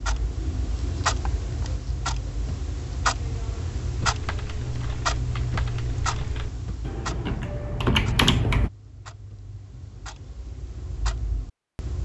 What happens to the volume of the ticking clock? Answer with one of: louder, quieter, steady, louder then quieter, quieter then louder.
quieter.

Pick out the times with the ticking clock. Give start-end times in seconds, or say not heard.
0.0-12.0.